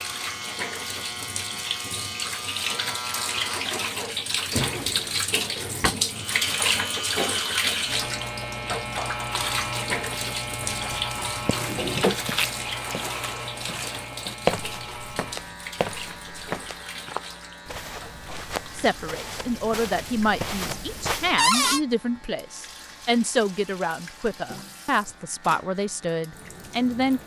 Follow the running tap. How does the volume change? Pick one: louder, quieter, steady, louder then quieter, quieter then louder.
quieter.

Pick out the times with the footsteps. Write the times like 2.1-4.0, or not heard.
11.3-21.5.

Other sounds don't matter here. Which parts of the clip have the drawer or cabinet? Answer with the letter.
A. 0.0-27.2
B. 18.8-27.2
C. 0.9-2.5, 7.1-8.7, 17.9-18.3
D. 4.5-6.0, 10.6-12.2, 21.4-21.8
D.